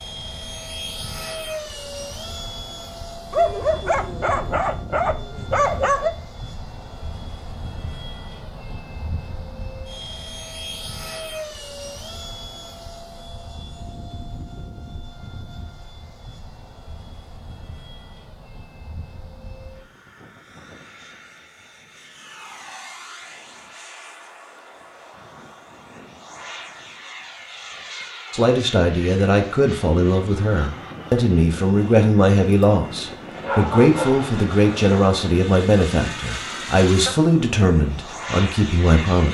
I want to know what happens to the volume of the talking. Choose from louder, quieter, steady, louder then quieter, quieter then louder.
steady.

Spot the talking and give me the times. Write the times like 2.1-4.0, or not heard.
28.3-39.2.